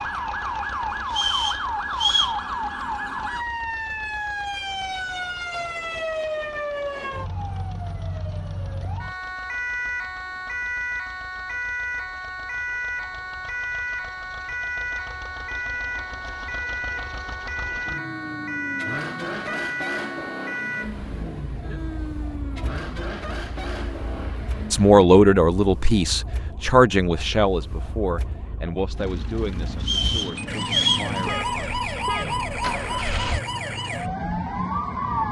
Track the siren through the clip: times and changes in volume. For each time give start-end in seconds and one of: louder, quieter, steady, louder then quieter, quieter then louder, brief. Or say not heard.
0.0-35.2 quieter then louder.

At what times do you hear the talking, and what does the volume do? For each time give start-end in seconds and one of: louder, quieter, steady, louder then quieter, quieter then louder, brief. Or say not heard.
24.7-31.8 quieter.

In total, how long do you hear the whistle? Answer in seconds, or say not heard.
3 s.